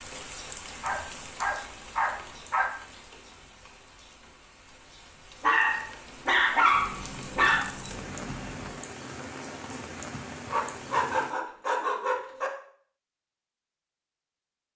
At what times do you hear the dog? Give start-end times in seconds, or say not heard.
0.8-2.7, 5.4-7.7, 10.5-12.5.